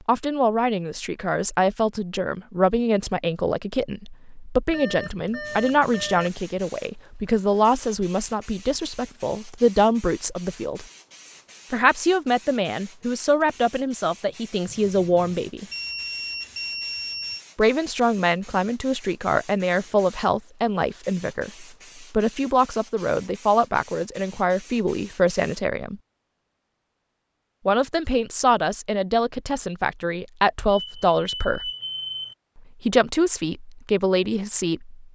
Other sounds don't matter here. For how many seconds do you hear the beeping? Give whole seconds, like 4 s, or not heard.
6 s.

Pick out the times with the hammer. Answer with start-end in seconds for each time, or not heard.
not heard.